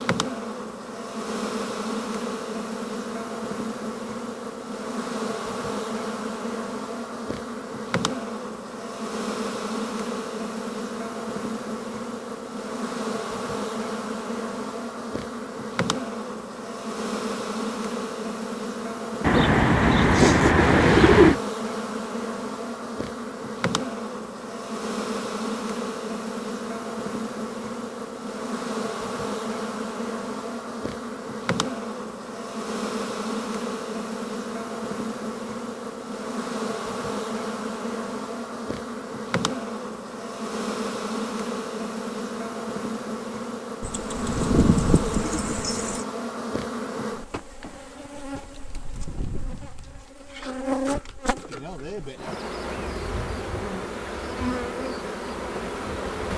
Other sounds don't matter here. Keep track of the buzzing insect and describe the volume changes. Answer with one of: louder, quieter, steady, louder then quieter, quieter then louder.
steady.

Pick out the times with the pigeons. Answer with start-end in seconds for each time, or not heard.
19.2-21.4, 43.8-46.0.